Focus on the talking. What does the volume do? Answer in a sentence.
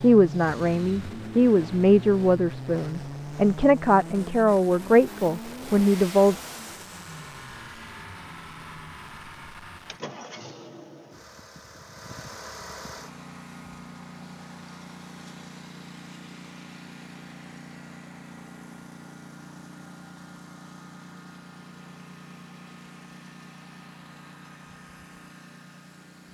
The loudness of the talking stays about the same.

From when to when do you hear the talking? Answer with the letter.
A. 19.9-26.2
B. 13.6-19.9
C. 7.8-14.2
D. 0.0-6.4
D.